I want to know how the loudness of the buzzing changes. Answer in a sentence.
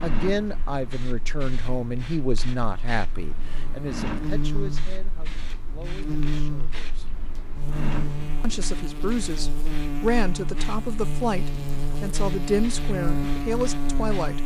The loudness of the buzzing goes up.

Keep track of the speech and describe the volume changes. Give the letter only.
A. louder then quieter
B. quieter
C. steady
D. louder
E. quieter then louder
E.